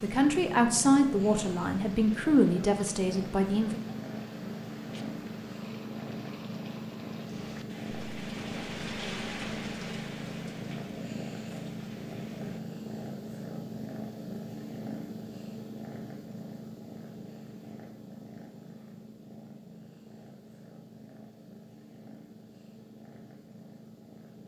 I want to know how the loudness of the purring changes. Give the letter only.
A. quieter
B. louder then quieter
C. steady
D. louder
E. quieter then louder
A.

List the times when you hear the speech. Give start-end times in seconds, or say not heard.
0.0-3.8.